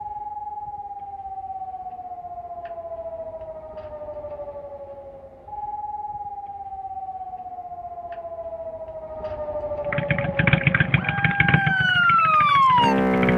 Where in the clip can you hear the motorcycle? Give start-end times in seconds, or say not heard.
9.8-13.3.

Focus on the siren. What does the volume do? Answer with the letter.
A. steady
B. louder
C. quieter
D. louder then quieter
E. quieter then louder
B.